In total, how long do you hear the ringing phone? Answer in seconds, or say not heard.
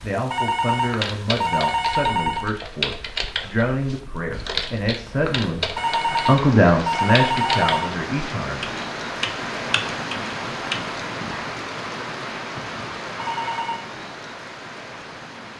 5 s.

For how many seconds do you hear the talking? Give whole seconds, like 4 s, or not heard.
9 s.